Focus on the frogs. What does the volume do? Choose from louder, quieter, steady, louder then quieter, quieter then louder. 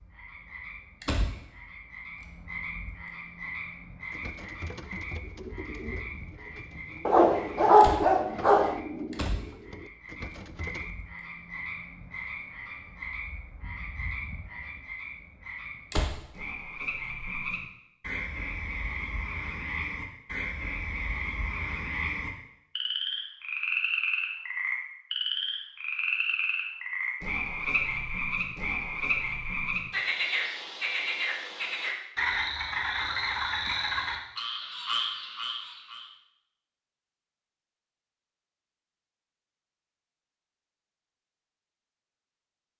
louder.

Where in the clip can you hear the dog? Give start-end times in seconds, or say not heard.
7.0-8.8.